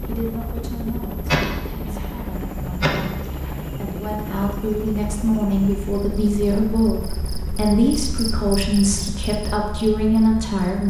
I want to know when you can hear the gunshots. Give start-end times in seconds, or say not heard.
1.2-3.6.